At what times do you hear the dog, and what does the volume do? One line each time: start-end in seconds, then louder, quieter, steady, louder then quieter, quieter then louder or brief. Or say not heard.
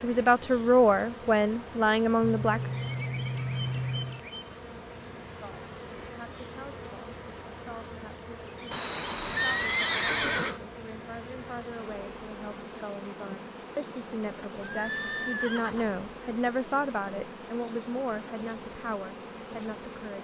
not heard.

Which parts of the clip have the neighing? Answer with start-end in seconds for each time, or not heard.
2.2-4.2, 8.7-10.6, 14.6-15.9.